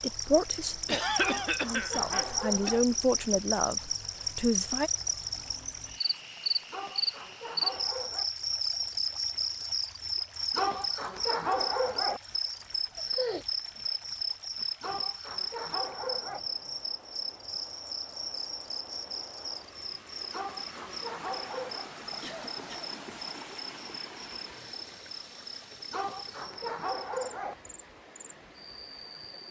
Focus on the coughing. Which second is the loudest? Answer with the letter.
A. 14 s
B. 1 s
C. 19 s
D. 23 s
B.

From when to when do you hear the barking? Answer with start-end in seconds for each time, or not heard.
1.1-2.9, 6.7-8.3, 10.5-12.2, 14.8-16.4, 20.3-21.9, 25.9-27.6.